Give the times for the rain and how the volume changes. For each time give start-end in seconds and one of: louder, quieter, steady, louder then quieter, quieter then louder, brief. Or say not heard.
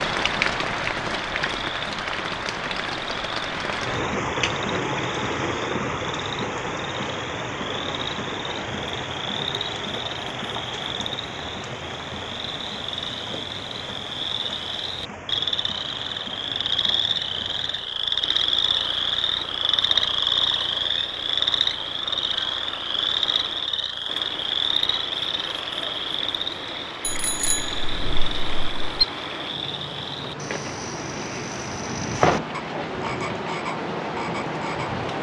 0.0-35.1 quieter then louder.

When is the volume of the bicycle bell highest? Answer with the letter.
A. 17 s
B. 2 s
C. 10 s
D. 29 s
D.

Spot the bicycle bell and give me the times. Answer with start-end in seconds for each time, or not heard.
27.0-29.1.